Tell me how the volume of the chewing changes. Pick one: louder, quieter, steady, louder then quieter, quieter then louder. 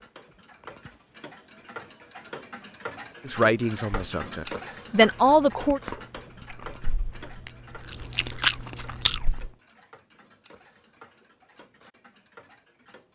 quieter then louder.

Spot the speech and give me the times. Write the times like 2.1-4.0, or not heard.
3.2-5.8.